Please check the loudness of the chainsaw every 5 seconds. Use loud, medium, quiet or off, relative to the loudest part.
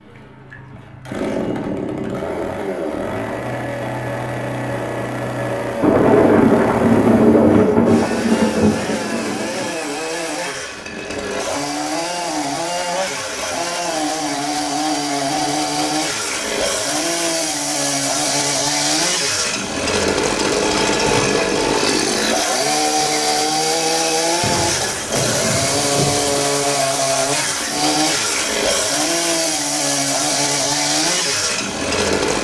medium, medium, medium, loud, loud, loud, loud.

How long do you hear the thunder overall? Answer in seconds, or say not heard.
6 s.